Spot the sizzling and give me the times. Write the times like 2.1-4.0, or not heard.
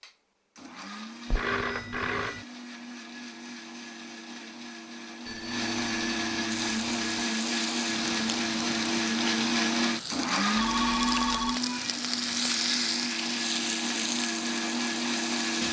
6.5-15.6.